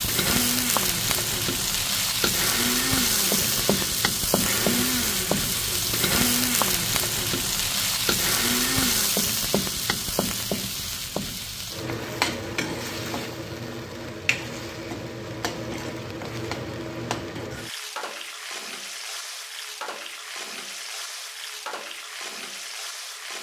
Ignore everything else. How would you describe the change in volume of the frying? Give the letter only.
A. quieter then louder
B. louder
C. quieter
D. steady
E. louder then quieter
C.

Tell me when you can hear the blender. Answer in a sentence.
The blender can be heard from 0.1 to 9.2 s.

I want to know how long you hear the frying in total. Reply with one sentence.
The frying can be heard for 23 seconds in total.